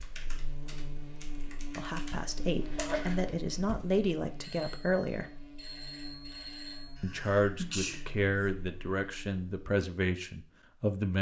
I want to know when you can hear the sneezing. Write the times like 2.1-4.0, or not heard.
2.6-3.2, 7.0-8.5.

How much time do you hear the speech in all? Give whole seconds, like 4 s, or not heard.
8 s.